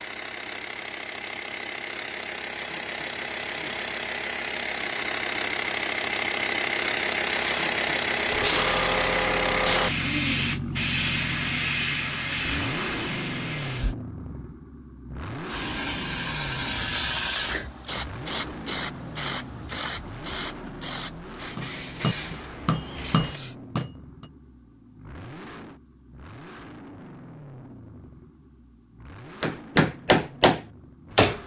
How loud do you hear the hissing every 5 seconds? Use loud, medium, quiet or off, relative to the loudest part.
off, loud, loud, loud, medium, off, off.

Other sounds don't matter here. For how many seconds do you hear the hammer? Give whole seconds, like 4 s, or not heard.
5 s.